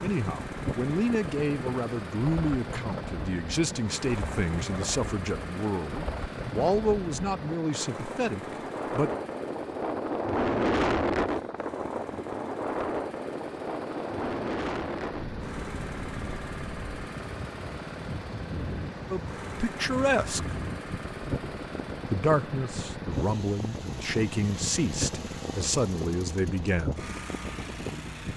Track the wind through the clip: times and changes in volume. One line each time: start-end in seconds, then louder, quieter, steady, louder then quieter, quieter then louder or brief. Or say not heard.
0.1-28.3 louder then quieter.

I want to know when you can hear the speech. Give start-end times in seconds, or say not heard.
0.0-9.2, 19.1-20.6, 22.1-27.1.